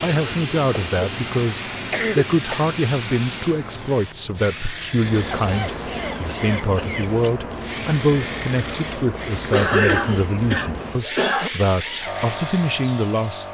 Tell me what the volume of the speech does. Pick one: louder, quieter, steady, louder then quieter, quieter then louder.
steady.